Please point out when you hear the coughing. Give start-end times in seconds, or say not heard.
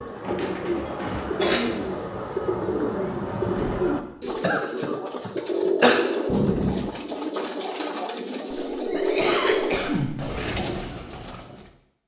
0.2-1.7, 4.4-6.0, 8.5-10.3.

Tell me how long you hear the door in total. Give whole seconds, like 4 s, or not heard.
2 s.